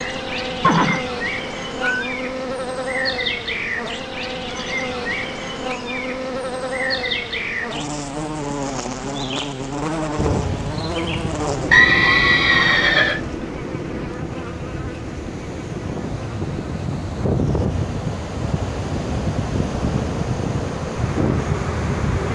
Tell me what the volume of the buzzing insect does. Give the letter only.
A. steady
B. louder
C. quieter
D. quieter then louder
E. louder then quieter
C.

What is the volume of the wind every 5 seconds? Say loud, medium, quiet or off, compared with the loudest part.
off, off, medium, loud, loud.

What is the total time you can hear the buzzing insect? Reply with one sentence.
You can hear the buzzing insect for 22 seconds altogether.